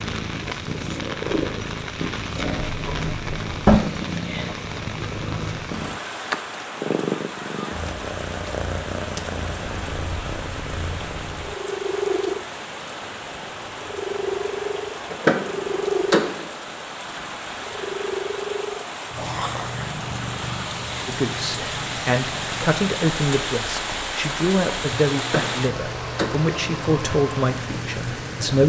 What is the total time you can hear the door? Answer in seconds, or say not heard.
4 s.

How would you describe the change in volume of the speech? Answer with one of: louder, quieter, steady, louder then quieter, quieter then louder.
steady.